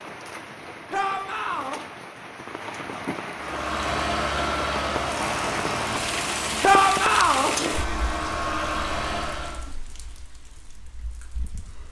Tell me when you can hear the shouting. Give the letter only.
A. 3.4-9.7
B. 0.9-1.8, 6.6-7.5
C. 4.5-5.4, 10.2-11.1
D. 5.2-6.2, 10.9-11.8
B.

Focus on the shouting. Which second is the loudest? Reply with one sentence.
The loudest moment of the shouting is at 7 seconds.